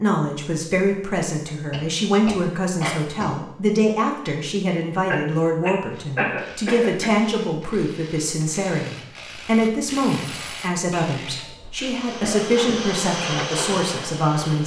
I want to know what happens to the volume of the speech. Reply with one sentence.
The loudness of the speech stays about the same.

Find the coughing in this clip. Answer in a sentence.
The coughing can be heard from 1.4 to 3.3 s, from 5.1 to 7.1 s and from 11.2 to 12.9 s.